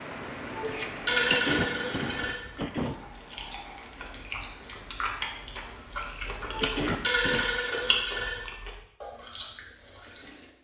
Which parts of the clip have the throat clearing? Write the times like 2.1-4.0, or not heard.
1.3-3.0, 6.6-7.5.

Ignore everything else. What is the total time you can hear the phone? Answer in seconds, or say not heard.
4 s.